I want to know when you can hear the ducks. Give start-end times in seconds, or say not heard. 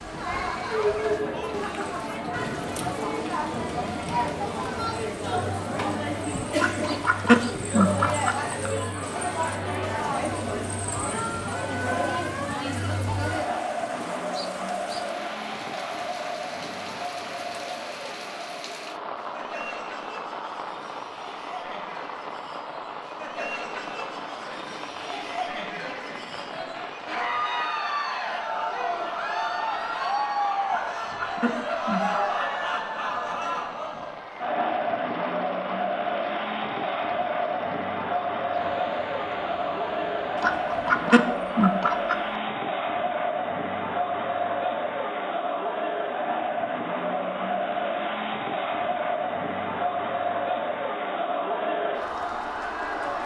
6.5-8.6, 30.6-32.5, 40.4-42.1.